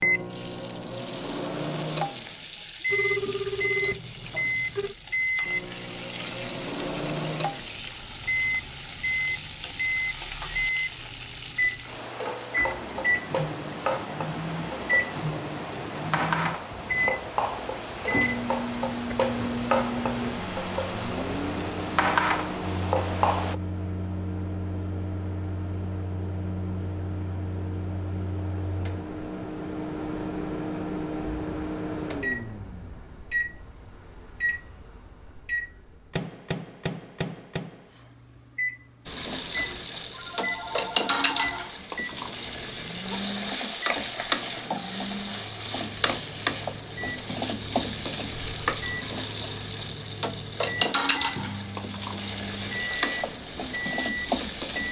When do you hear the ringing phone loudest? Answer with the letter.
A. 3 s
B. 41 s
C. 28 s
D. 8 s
A.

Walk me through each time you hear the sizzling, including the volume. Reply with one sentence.
The sizzling can be heard from 0.0 to 23.6 s, getting louder; and from 39.0 to 54.8 s, at a steady volume.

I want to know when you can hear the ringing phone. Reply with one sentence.
You can hear the ringing phone from 2.9 to 5.0 s and from 40.1 to 41.8 s.